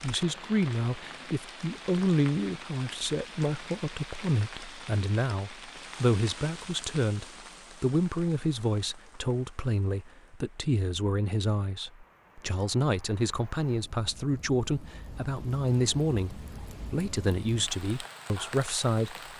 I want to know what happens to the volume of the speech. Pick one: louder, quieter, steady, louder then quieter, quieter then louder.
steady.